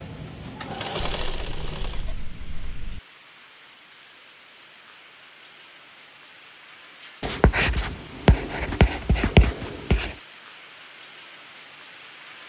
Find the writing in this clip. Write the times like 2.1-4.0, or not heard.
1.2-3.0, 7.2-10.1.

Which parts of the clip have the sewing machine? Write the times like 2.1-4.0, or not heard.
0.0-2.0.